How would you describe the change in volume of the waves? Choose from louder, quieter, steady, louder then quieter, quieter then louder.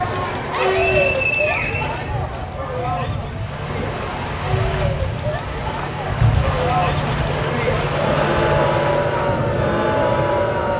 louder.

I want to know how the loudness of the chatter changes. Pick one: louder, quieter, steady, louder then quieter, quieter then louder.
quieter then louder.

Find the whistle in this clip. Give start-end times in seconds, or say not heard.
0.7-2.5.